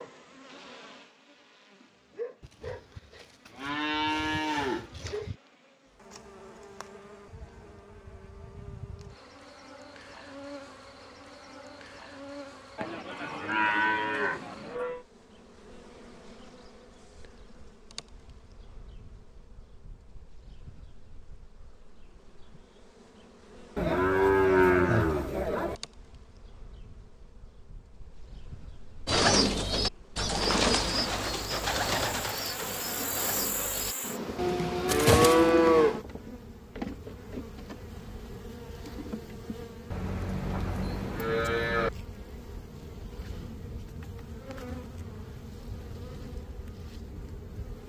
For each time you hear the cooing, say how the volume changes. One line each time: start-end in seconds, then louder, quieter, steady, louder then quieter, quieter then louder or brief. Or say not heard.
29.1-35.5 quieter then louder.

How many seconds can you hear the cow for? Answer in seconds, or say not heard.
11 s.